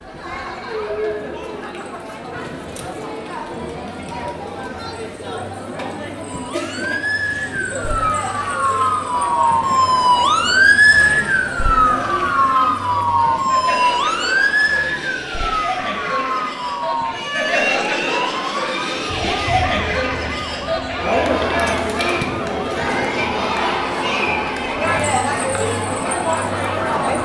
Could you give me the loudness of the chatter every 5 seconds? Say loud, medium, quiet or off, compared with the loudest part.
medium, medium, medium, loud, loud, loud.